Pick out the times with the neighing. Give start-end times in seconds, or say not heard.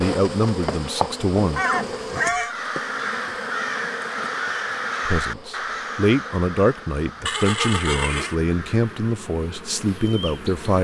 1.6-2.5, 7.2-8.3.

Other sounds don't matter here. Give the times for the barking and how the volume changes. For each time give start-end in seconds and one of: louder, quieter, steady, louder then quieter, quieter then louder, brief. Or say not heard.
not heard.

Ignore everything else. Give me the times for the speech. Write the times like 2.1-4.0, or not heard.
0.0-1.6, 5.0-10.8.